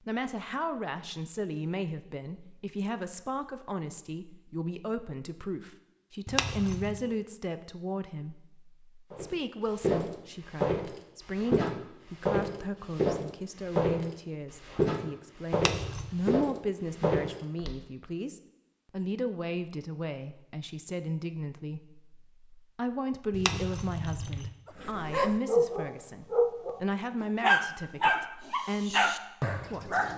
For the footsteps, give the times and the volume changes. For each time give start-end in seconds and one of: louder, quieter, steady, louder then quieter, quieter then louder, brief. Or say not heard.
9.1-17.8 steady.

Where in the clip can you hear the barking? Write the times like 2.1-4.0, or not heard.
24.6-30.1.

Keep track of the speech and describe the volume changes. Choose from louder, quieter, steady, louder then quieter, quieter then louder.
steady.